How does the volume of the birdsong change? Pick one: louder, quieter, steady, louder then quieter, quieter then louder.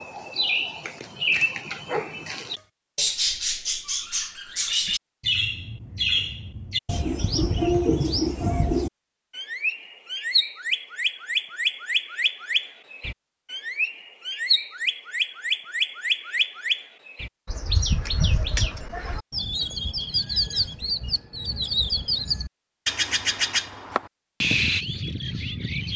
steady.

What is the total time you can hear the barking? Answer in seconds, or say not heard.
2 s.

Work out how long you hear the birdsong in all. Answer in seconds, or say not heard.
26 s.